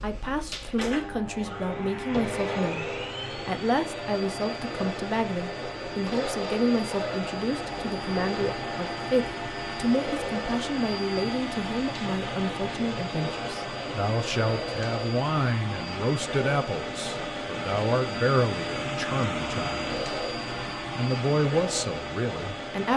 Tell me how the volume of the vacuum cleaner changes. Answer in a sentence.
The volume of the vacuum cleaner stays about the same.